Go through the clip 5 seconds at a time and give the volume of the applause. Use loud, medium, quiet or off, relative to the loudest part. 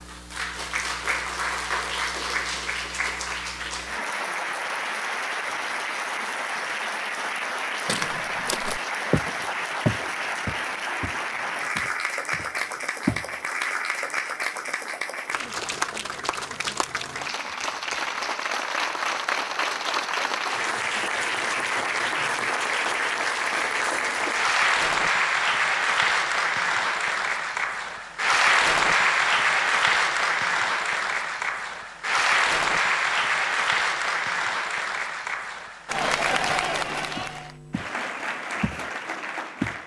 medium, medium, medium, medium, loud, loud, loud, medium.